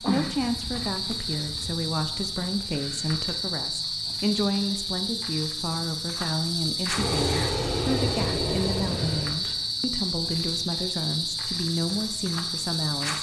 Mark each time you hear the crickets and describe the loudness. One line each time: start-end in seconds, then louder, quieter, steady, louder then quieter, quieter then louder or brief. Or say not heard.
0.0-13.1 steady.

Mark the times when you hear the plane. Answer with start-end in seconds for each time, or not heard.
6.9-9.3.